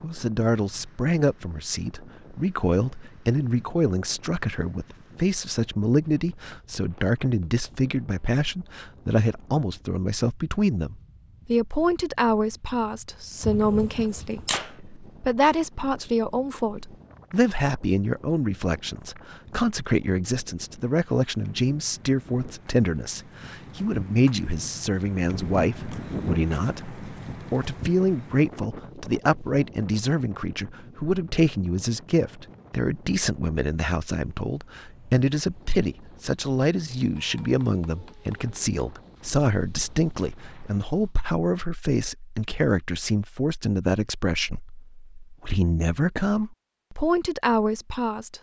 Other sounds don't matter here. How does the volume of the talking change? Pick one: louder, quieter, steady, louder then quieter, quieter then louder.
steady.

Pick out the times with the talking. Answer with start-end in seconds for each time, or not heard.
0.0-48.3.